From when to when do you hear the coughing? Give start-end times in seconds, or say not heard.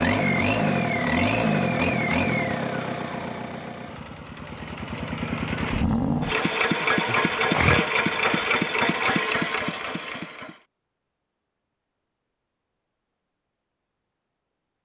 7.0-8.6.